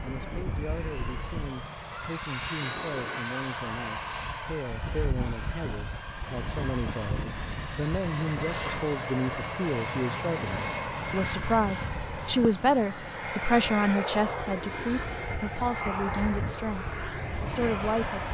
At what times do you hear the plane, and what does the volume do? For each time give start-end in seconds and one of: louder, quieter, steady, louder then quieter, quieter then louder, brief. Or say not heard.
0.0-18.3 steady.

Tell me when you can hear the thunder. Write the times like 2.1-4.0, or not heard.
1.7-3.2.